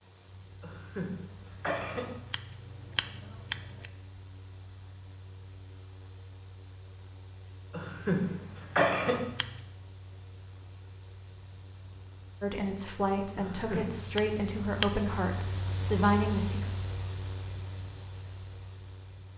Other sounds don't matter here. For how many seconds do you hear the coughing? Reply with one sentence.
The coughing can be heard for 4 seconds in total.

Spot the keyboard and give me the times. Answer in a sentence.
The keyboard can't be heard in this clip.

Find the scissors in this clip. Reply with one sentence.
The scissors can be heard from 1.8 to 3.9 s, from 8.8 to 9.7 s and from 13.6 to 15.2 s.